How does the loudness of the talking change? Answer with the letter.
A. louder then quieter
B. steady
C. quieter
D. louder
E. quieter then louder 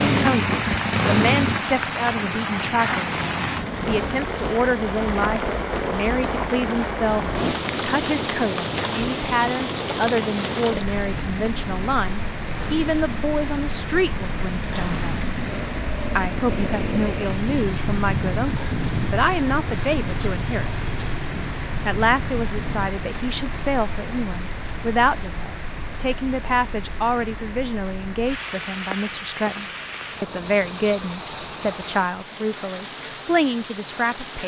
B.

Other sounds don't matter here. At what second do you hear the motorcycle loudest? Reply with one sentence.
The loudest moment of the motorcycle is at 1 second.